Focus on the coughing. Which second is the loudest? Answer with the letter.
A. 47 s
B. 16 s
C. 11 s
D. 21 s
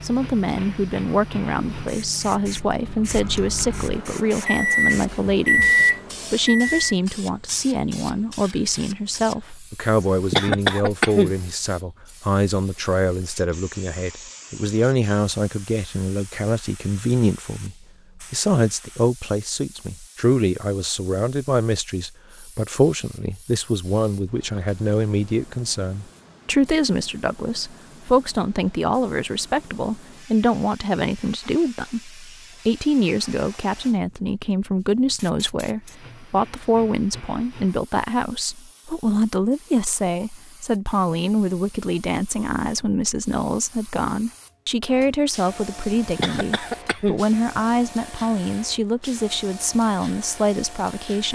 C.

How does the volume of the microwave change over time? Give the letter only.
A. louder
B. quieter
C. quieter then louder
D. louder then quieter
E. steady
A.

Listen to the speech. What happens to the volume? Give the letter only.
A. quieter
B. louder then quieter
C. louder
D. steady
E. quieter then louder
D.